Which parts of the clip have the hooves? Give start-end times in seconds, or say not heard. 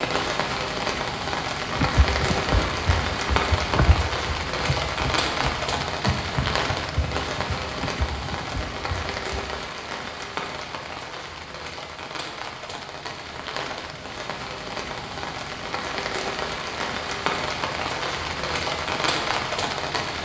1.6-9.5.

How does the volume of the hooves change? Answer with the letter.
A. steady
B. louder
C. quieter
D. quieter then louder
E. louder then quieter
C.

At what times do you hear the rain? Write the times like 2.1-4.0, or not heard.
0.0-20.2.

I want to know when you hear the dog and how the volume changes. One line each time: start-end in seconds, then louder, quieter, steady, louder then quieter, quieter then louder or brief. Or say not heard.
not heard.